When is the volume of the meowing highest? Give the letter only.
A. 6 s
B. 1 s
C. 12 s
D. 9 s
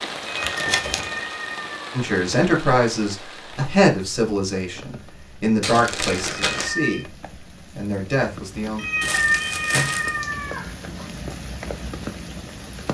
D.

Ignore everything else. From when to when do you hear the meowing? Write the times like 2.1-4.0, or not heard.
0.4-2.0, 6.5-7.0, 8.8-11.1.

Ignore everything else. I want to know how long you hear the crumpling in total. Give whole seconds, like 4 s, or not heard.
3 s.